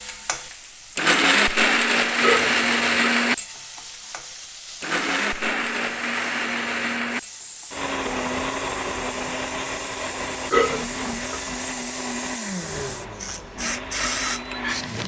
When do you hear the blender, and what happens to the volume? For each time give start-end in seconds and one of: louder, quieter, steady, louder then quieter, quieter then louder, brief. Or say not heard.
0.0-15.0 quieter.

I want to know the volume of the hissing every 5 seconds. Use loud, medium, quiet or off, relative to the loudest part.
medium, medium, loud.